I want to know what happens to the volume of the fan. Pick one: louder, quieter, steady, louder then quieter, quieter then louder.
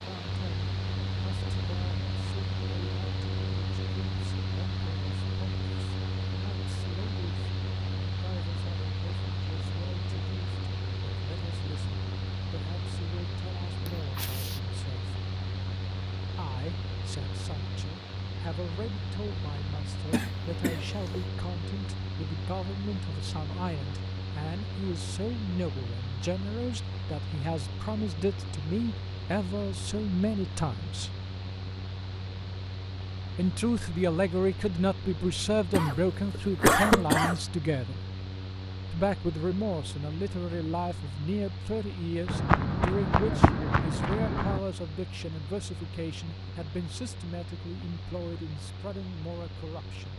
quieter.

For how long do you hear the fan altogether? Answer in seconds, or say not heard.
50 s.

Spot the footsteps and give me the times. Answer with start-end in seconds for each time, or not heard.
42.2-44.6.